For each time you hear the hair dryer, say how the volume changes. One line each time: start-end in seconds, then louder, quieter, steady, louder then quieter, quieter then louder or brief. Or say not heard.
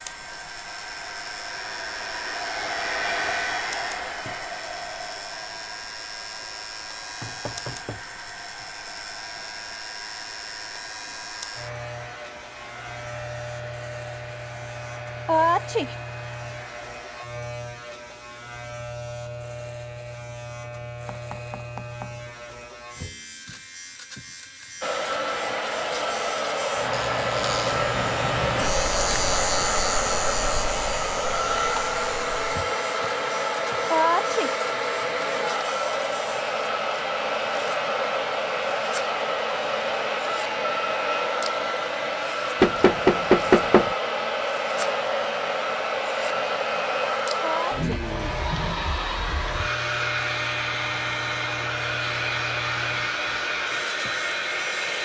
0.0-17.2 quieter
24.8-54.9 steady.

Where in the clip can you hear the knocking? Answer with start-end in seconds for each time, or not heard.
7.2-8.7, 21.1-22.1, 42.6-44.0.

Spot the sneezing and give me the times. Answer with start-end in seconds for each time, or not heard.
15.2-15.9, 33.9-34.5, 47.4-48.0.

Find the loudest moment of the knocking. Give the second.
43 s.